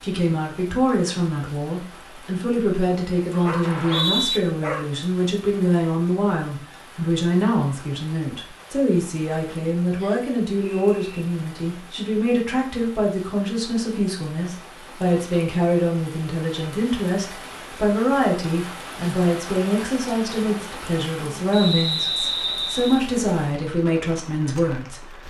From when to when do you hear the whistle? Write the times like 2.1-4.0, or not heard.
3.6-4.4, 9.9-11.1, 21.5-23.0.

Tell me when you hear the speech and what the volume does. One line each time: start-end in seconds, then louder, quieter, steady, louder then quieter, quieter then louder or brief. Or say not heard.
0.0-25.2 steady.